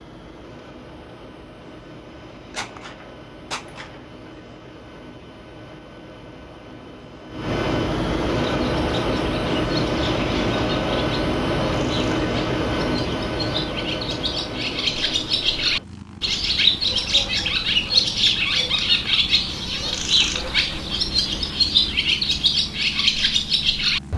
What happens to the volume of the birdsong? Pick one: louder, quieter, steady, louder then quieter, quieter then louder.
louder.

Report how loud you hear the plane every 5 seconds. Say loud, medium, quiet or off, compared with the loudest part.
quiet, loud, loud, quiet, quiet.